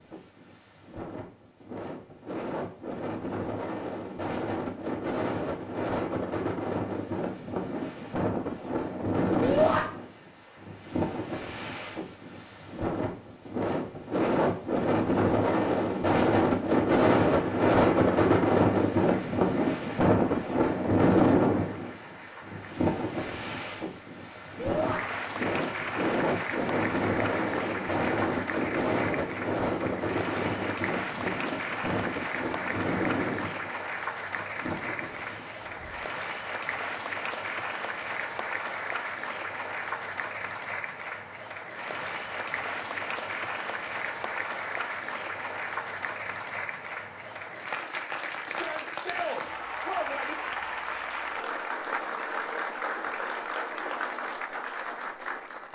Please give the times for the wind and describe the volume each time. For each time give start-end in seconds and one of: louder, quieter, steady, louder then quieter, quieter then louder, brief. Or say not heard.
0.0-36.0 louder then quieter.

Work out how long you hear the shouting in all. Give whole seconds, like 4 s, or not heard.
3 s.